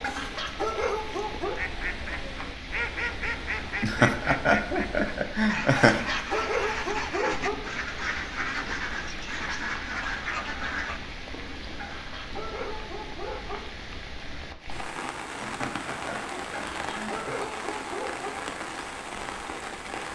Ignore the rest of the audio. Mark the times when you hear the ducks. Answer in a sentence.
You can hear the ducks from 1.6 to 11.0 s.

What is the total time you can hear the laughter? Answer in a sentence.
The laughter can be heard for 4 seconds in total.